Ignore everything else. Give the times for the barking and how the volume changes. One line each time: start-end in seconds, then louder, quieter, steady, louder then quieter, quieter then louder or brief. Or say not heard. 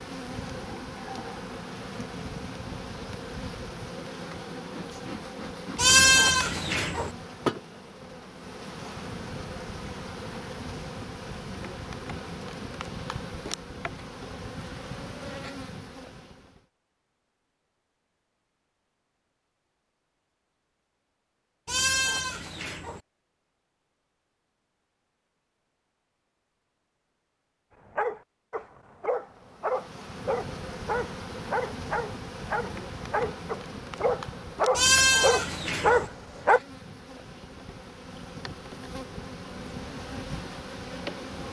27.9-36.6 louder.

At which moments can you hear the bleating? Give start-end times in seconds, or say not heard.
5.8-7.1, 21.6-23.0, 34.8-36.1.